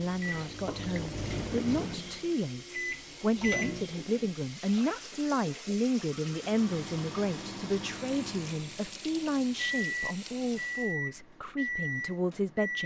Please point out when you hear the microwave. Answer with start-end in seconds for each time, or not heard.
0.0-4.2, 6.2-12.8.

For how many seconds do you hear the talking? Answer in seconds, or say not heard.
13 s.